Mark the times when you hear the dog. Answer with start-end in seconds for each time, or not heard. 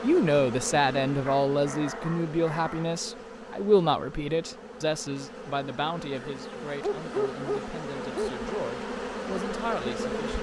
1.2-3.0, 6.2-8.3.